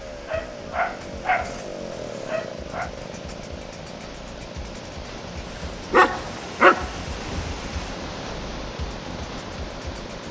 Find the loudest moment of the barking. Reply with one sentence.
The loudest moment of the barking is at 7 seconds.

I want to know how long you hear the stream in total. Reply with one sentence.
You can hear the stream for 10 seconds altogether.